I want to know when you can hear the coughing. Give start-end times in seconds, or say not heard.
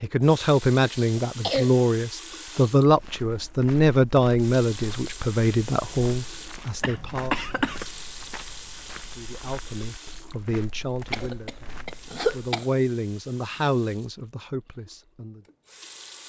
0.8-1.7, 6.8-7.8, 11.1-12.7.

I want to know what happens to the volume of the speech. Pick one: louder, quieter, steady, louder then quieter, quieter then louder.
quieter.